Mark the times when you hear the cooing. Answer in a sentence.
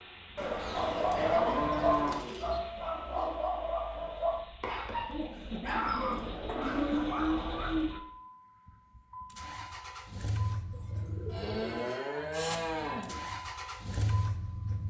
You can hear the cooing from 0.6 to 2.6 s, from 5.0 to 7.1 s and from 10.7 to 12.6 s.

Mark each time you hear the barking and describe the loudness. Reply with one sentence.
The barking can be heard from 0.6 to 7.9 s, getting quieter.